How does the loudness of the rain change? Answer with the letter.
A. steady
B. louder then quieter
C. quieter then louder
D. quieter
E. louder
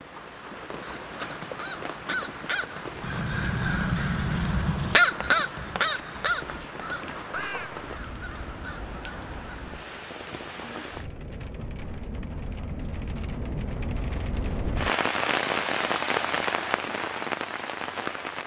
E.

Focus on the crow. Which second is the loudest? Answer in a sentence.
The loudest moment of the crow is at 5 seconds.